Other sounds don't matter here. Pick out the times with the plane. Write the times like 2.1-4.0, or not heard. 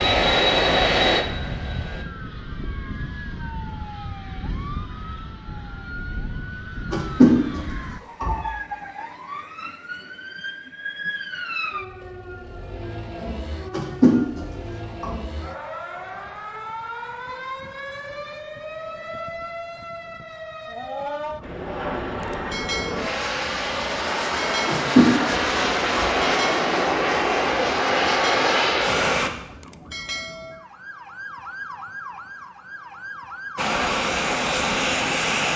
0.0-2.0, 21.4-29.3, 33.5-35.5.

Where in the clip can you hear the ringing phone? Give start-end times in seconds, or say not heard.
6.9-8.4, 13.7-15.2, 24.6-26.1.